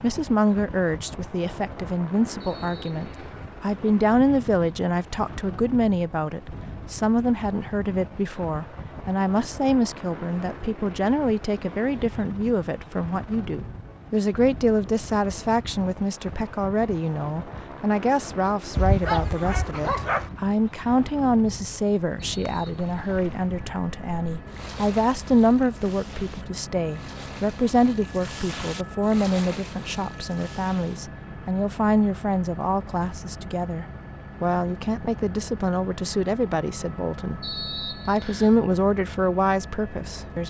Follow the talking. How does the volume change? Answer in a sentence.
The volume of the talking stays about the same.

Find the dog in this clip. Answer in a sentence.
The dog can be heard from 18.8 to 20.3 s.